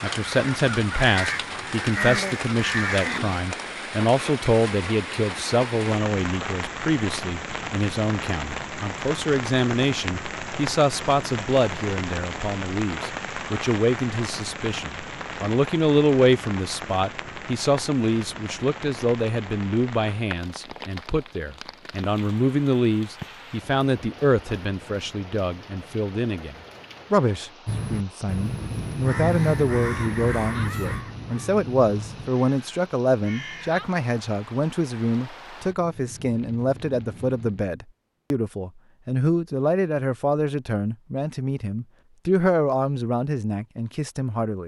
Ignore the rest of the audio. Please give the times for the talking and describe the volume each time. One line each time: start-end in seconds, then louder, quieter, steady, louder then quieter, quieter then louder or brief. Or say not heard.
0.0-44.6 steady.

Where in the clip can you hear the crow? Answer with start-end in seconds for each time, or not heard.
0.1-3.4, 27.6-33.9.